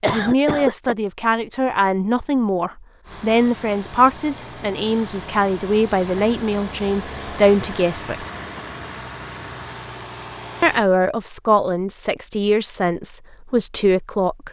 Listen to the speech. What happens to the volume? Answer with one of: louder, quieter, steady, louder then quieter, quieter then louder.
steady.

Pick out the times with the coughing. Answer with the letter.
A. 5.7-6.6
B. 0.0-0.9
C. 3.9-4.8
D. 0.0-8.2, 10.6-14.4
B.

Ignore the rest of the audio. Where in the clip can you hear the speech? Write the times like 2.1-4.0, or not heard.
0.0-8.2, 10.6-14.4.